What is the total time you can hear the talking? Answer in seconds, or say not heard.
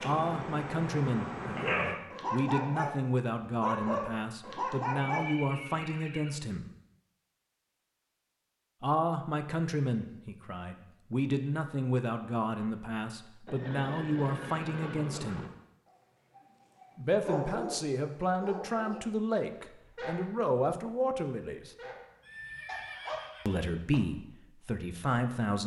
20 s.